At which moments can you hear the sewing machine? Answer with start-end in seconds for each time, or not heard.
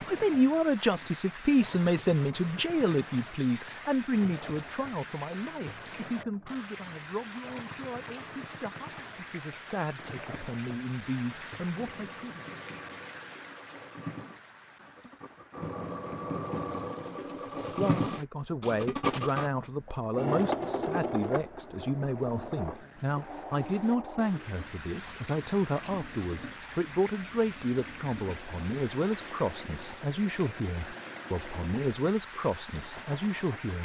0.0-33.8.